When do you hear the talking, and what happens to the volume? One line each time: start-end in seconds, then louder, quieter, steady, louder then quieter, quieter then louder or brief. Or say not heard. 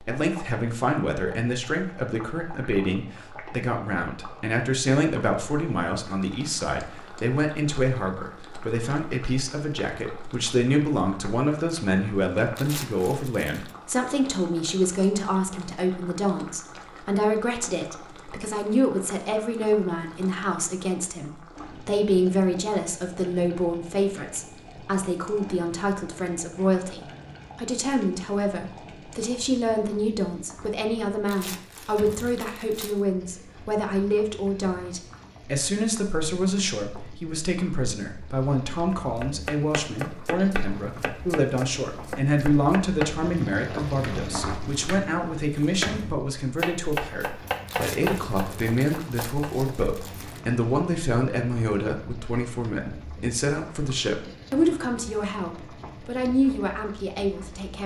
0.0-57.8 steady.